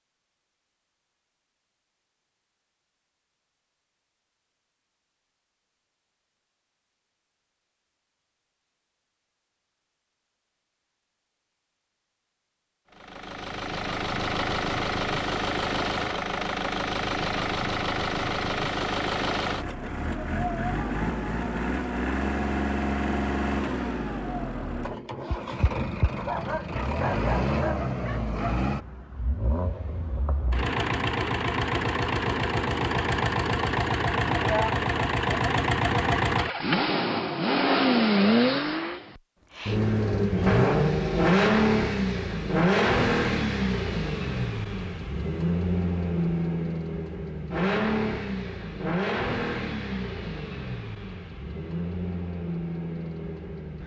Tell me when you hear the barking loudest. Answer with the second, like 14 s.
27 s.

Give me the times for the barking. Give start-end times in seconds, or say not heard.
26.1-28.6.